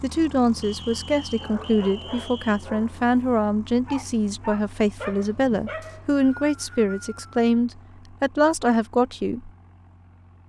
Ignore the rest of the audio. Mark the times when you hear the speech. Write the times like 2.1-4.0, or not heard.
0.0-9.5.